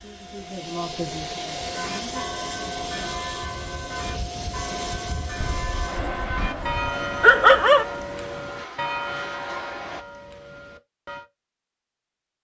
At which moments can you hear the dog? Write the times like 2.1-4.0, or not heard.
5.4-7.8.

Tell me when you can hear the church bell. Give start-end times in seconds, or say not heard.
1.6-11.2.